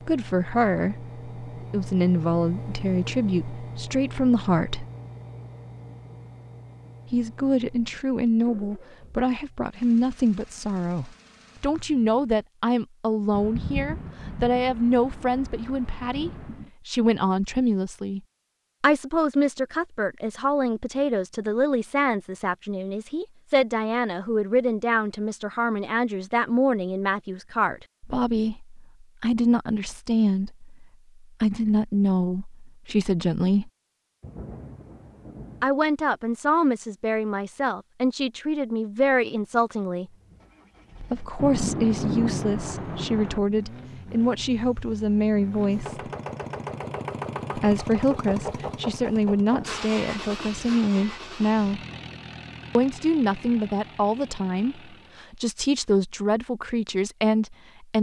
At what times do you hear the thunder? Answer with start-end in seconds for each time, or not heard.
13.3-16.7, 34.2-35.6, 41.4-43.4.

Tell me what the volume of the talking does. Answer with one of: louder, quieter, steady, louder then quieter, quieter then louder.
steady.